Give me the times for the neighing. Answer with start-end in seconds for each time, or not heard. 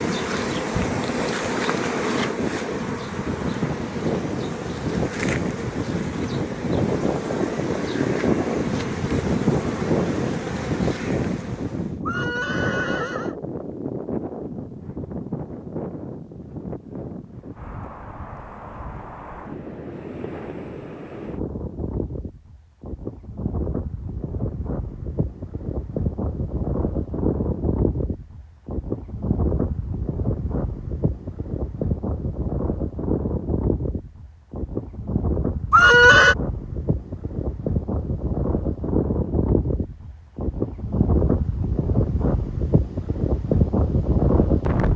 12.1-13.3, 35.7-36.4.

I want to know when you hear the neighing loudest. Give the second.
36 s.